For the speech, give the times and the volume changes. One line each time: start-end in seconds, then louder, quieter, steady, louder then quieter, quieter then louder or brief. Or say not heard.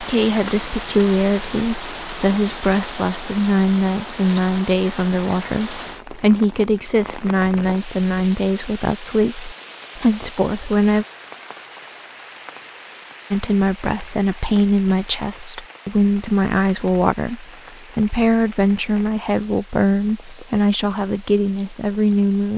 0.0-11.1 steady
13.3-22.5 steady.